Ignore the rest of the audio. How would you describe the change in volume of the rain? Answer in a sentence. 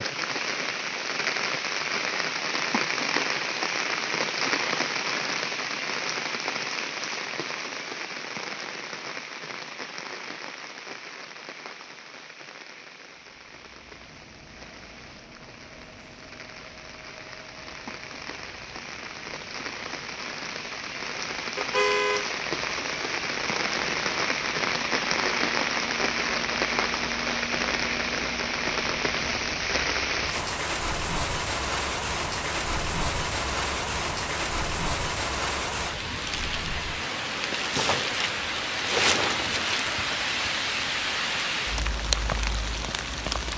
The volume of the rain goes down, then up.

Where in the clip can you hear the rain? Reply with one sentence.
You can hear the rain from 0.0 to 43.5 s.